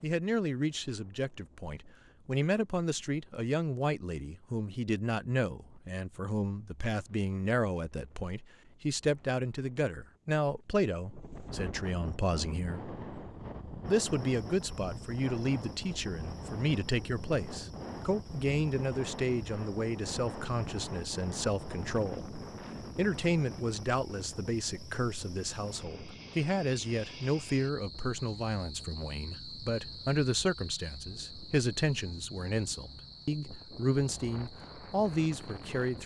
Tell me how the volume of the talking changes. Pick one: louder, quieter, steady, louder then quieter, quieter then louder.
steady.